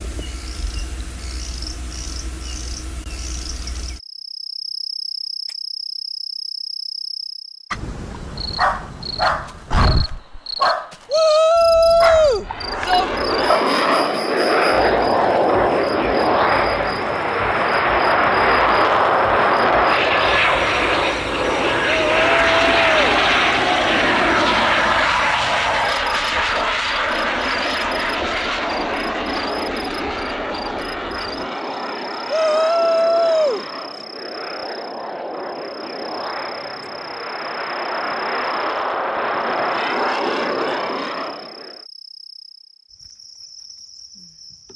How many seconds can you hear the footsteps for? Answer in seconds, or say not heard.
not heard.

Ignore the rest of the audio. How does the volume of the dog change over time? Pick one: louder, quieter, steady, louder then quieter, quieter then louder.
quieter.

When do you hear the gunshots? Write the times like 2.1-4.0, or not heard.
not heard.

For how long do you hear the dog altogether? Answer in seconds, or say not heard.
5 s.